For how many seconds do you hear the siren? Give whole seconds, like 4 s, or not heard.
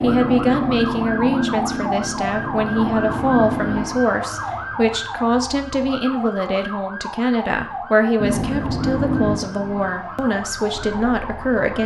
12 s.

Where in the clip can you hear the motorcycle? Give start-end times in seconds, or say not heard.
0.0-3.9, 8.2-11.7.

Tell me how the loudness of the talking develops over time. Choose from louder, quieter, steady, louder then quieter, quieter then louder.
steady.